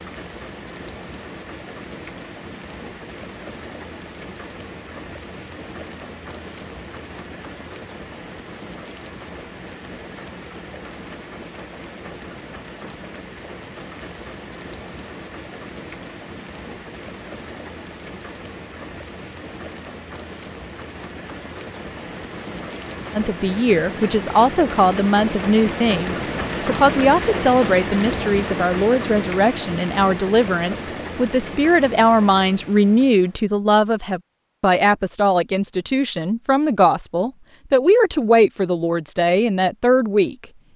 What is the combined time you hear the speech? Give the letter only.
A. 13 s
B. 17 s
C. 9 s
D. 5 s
B.